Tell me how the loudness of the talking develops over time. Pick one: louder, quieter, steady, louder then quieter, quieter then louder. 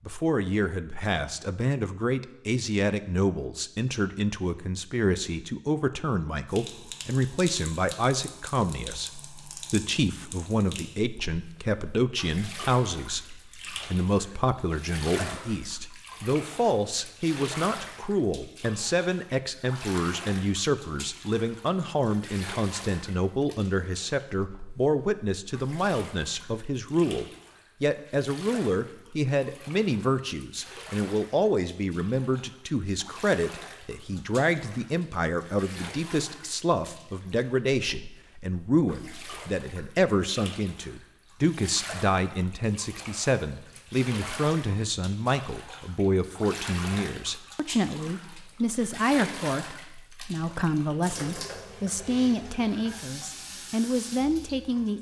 steady.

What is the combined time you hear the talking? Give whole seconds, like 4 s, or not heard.
55 s.